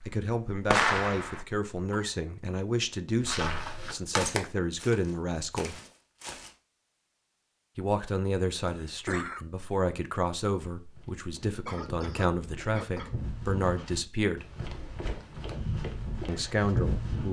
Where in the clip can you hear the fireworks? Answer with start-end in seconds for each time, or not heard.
0.0-1.4.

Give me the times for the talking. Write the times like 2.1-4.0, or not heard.
0.1-5.8, 7.8-14.4, 16.2-17.2.